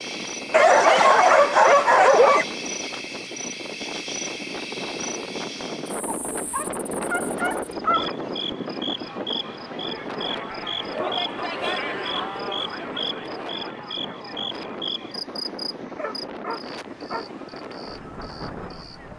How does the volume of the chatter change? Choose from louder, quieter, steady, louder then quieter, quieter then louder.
louder then quieter.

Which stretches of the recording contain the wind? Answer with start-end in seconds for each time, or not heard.
0.0-19.1.